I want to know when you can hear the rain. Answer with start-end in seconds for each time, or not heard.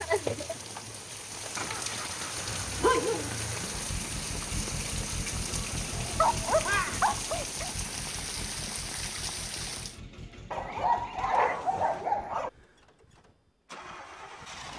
0.0-10.0.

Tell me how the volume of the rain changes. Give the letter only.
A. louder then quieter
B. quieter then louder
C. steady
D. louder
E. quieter
C.